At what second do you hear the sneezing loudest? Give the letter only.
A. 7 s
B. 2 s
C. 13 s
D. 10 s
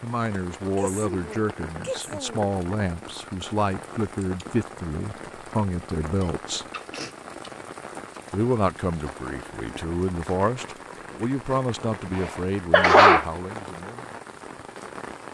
C.